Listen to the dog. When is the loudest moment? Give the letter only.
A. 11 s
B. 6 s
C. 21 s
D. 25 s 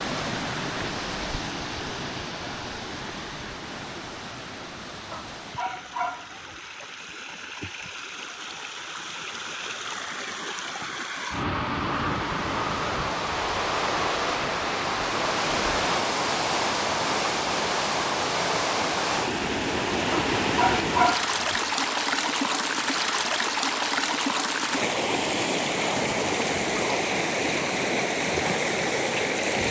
C.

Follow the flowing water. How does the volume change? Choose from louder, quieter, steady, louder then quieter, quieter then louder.
louder.